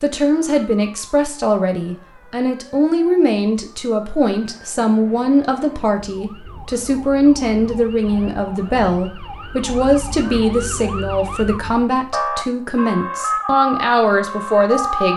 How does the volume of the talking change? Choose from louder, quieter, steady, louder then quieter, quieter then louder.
steady.